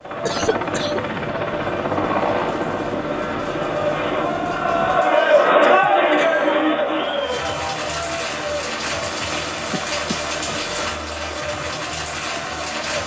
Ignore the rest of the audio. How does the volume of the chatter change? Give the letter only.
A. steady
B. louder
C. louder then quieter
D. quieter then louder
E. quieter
C.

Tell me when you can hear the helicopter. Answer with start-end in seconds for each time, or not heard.
0.0-5.0.